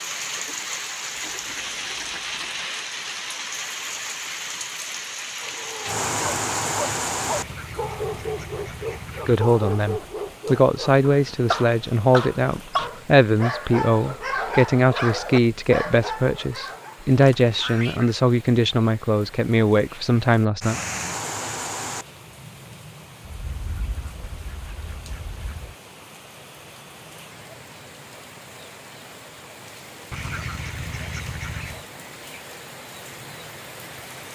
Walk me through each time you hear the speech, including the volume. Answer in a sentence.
The speech can be heard from 9.2 to 20.8 s, at a steady volume.